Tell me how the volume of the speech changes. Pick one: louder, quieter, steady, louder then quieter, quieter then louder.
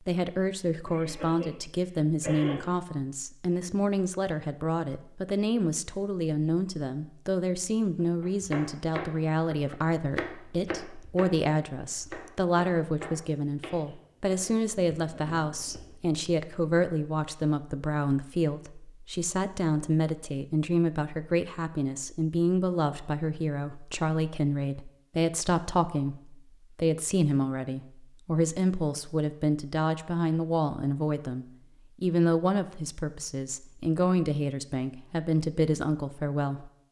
steady.